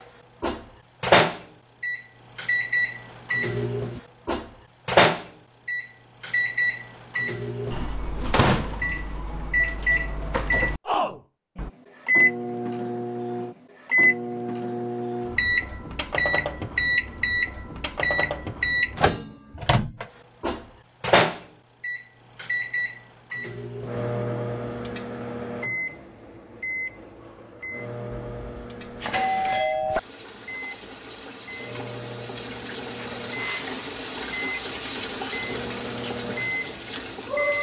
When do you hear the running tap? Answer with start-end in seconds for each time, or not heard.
29.9-37.5.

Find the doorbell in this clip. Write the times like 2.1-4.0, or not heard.
28.1-30.0.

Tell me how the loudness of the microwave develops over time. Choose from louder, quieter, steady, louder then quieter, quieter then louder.
quieter.